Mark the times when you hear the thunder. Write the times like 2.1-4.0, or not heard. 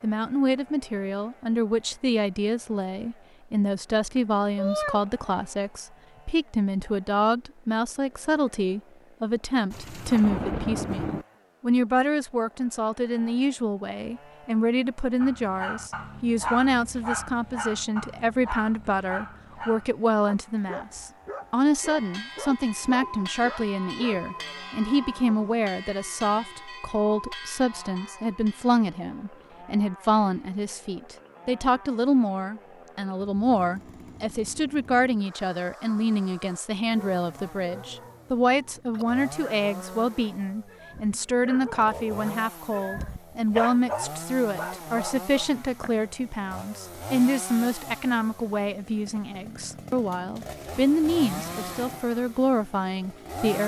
9.7-11.2, 50.8-52.0.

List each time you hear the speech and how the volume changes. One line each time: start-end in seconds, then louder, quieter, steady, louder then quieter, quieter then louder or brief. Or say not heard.
0.0-53.6 steady.